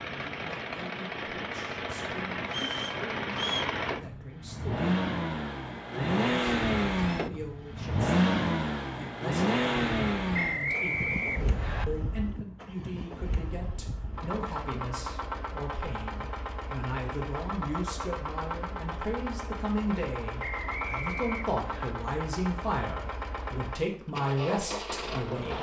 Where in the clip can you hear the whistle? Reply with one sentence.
The whistle can be heard from 2.5 to 3.8 s, from 10.3 to 11.8 s and from 20.4 to 21.9 s.